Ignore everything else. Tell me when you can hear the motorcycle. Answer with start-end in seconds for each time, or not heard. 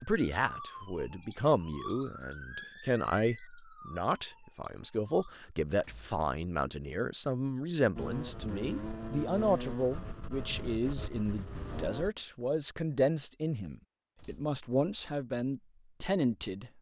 8.0-12.1.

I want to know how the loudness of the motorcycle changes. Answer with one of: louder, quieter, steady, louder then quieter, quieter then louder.
quieter.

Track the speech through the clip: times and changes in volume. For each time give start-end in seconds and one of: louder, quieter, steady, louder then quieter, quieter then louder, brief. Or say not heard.
0.0-16.7 steady.